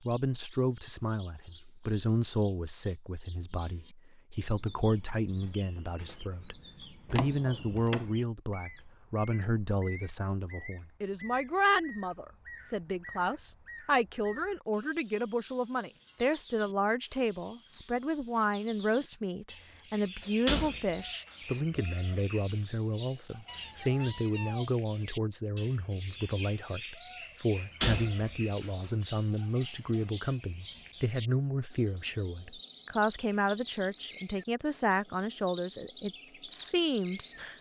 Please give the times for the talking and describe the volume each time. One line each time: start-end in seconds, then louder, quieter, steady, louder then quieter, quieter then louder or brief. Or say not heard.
0.0-37.5 steady.